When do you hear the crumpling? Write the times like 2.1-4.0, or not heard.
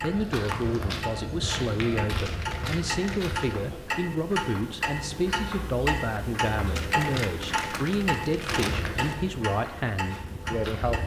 2.2-3.5, 6.8-8.9.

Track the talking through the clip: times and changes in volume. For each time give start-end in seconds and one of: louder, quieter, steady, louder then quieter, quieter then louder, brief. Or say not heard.
0.0-11.0 steady.